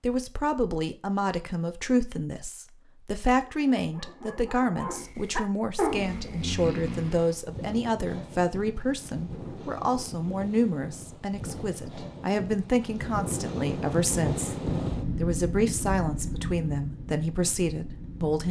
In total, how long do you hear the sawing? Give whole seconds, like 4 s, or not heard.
not heard.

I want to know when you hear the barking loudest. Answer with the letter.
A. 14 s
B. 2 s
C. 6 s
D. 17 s
C.